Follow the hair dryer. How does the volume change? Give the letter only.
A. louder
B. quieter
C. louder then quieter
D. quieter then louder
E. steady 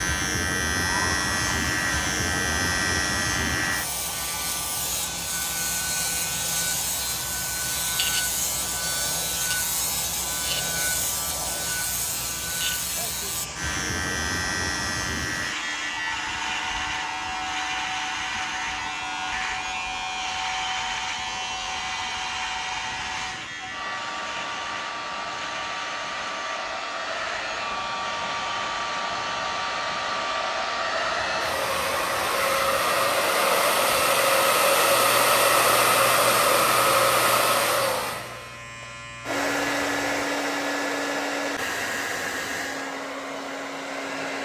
A.